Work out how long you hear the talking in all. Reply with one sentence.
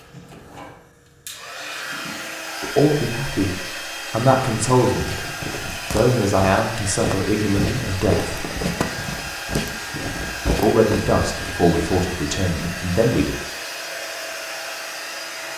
The talking can be heard for 8 seconds in total.